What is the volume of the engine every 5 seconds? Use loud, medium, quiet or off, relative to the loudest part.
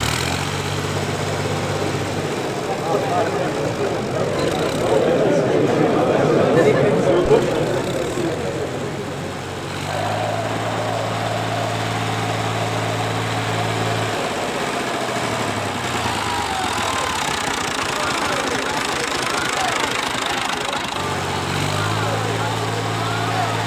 loud, medium, loud, loud, loud.